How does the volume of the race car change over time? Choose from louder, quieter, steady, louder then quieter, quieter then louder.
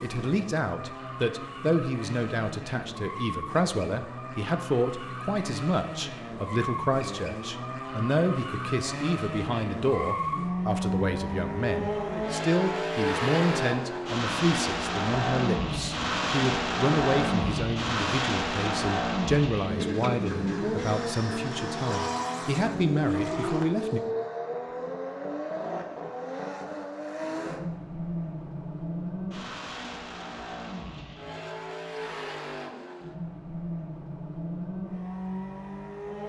louder then quieter.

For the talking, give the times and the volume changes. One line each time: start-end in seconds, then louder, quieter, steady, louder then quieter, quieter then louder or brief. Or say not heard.
0.0-24.0 steady.